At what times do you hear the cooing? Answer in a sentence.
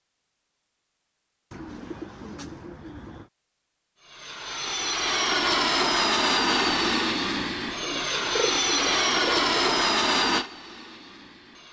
The cooing can be heard from 1.5 to 3.3 s and from 7.8 to 9.8 s.